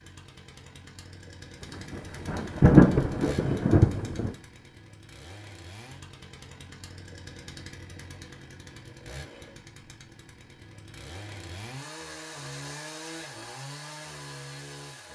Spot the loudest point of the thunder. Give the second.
3 s.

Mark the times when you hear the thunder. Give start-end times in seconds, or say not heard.
1.9-4.3.